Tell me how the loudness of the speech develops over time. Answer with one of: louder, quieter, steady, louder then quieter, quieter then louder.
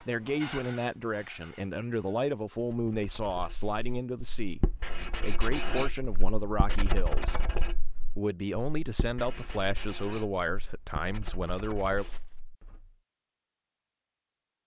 steady.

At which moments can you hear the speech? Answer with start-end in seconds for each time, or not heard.
0.0-12.1.